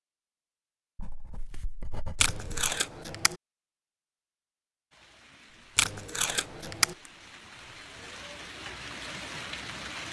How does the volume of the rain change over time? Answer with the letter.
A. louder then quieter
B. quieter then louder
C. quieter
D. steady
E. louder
E.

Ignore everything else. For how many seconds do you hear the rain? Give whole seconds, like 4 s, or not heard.
5 s.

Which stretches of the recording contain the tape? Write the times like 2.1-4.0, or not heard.
2.1-3.4, 5.8-7.0.